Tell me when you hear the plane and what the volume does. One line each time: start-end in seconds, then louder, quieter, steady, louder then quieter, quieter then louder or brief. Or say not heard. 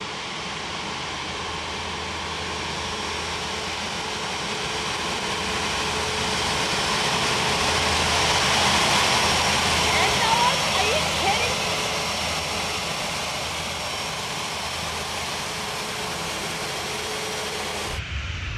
0.0-18.5 louder then quieter.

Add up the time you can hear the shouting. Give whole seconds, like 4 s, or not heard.
2 s.